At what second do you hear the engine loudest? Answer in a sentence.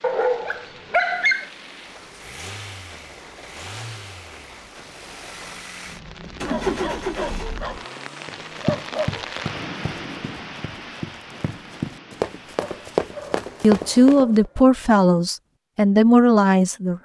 The volume of the engine peaks at 7 seconds.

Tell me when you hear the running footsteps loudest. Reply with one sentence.
The loudest moment of the running footsteps is at 13 seconds.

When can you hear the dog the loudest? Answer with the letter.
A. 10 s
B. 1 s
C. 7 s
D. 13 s
B.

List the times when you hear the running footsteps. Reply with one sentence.
The running footsteps can be heard from 8.6 to 14.5 s.